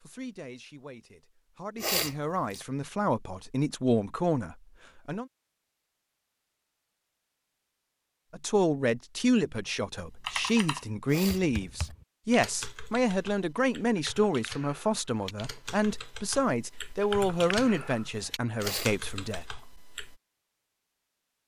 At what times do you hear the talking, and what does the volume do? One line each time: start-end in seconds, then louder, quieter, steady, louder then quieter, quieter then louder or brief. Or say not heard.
0.0-5.2 louder
8.3-19.4 steady.